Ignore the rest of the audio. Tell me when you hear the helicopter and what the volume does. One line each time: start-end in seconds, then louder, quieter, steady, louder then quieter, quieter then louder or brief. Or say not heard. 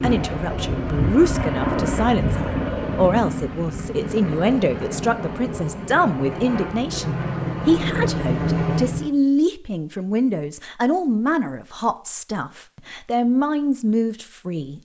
0.0-9.1 quieter then louder.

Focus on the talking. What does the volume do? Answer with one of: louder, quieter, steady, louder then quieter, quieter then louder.
steady.